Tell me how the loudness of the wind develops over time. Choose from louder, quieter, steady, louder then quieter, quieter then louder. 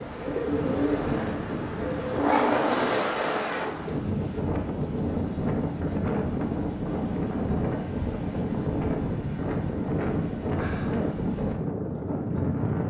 steady.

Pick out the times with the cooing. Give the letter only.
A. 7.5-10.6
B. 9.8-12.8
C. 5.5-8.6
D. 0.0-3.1
D.